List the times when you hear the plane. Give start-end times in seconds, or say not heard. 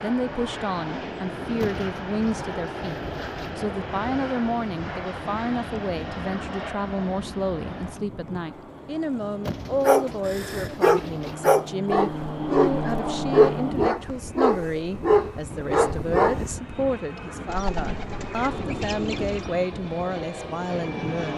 0.0-21.3.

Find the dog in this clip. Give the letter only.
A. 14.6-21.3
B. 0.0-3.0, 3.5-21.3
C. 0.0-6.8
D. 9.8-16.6
D.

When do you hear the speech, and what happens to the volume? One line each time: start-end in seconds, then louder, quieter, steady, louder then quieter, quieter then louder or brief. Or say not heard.
0.0-3.0 brief
3.5-21.3 steady.